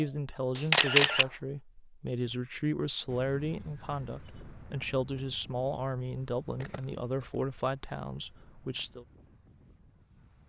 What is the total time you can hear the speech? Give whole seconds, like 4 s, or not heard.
9 s.